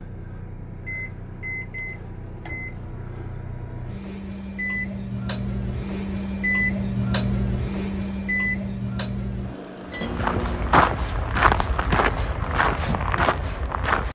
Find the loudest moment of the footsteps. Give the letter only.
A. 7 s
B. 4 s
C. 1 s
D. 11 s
D.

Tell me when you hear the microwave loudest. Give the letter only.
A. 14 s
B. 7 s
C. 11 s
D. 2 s
B.